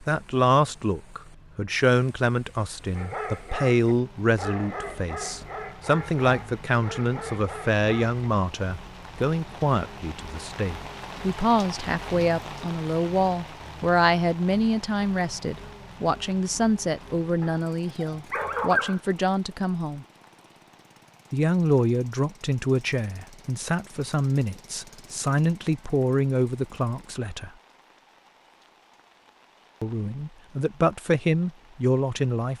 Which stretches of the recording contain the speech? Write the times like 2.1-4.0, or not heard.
0.0-20.1, 21.3-27.5, 29.8-32.5.